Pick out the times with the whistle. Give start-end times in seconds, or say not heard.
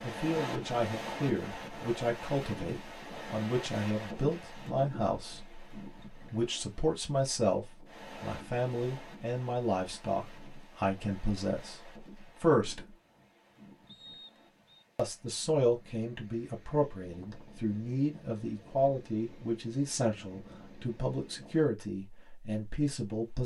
13.8-14.8.